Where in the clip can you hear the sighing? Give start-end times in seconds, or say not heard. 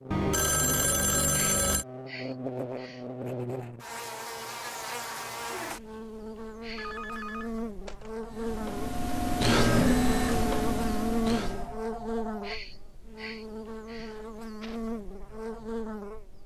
1.3-3.0, 6.6-7.0, 12.4-14.8.